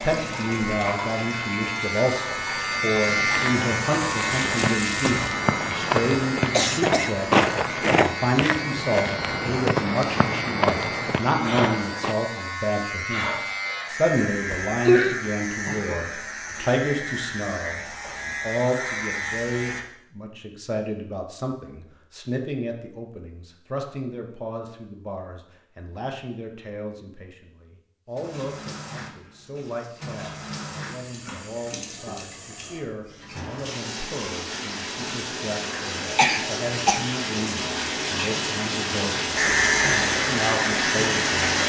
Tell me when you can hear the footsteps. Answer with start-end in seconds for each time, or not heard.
3.2-12.2.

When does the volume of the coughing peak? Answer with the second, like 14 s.
15 s.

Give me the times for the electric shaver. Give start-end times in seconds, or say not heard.
0.0-19.9, 39.4-41.5.